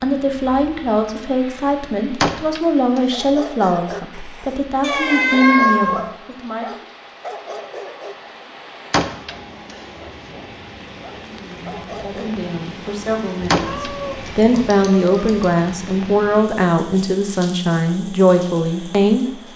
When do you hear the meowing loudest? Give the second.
6 s.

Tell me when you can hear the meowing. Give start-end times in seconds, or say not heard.
4.8-6.1, 13.6-15.4.